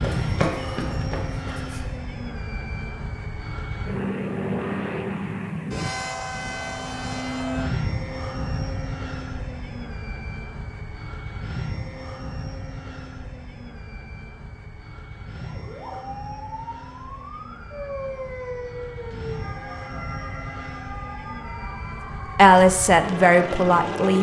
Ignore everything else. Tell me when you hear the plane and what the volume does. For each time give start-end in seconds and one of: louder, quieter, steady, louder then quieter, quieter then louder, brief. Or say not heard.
0.0-24.1 quieter then louder.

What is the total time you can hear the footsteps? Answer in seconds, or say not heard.
2 s.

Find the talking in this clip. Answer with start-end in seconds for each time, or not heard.
22.4-24.1.